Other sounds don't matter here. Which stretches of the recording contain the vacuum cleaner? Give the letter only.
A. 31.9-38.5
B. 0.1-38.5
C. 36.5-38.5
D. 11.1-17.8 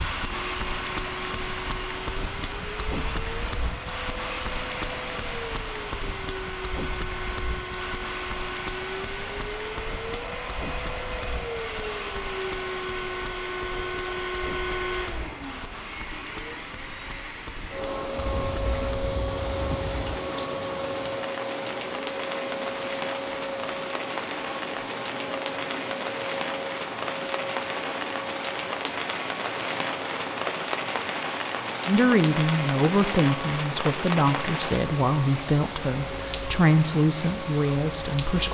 B.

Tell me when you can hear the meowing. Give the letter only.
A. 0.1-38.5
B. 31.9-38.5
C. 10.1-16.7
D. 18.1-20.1
D.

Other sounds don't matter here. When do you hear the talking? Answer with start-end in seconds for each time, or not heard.
31.9-38.5.